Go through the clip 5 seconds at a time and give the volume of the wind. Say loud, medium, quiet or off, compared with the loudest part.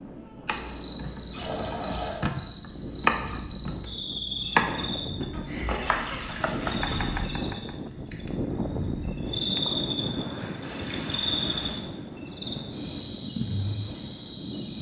medium, loud, loud.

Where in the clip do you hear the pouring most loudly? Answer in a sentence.
The loudest moment of the pouring is at 2 seconds.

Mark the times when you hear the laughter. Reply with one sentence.
You can hear the laughter from 5.3 to 6.2 s.